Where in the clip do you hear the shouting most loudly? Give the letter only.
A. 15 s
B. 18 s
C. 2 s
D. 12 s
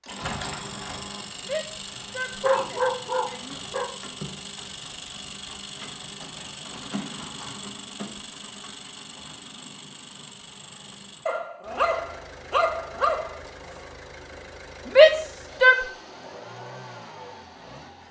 A.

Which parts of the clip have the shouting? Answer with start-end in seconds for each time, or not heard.
1.4-3.6, 14.8-15.8.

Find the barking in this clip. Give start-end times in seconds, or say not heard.
2.4-3.9, 11.2-13.8.